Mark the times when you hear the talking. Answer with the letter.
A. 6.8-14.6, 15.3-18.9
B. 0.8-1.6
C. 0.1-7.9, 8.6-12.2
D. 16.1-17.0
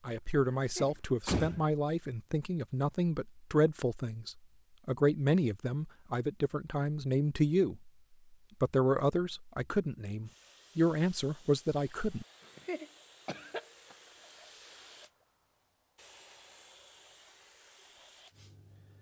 C.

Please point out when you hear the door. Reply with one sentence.
The door can be heard from 0.8 to 1.6 s.